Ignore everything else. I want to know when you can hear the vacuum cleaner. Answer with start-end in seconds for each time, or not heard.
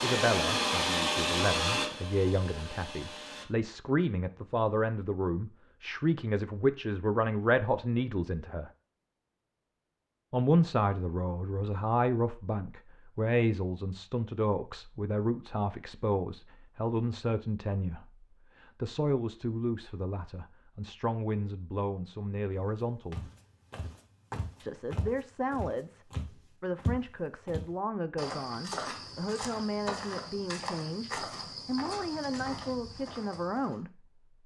0.0-3.5.